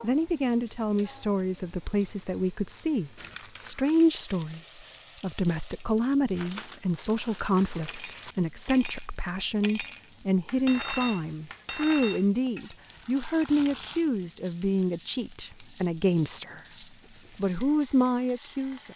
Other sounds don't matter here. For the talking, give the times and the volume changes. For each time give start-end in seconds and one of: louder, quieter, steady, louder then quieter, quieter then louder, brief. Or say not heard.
0.0-16.6 steady
17.4-18.9 brief.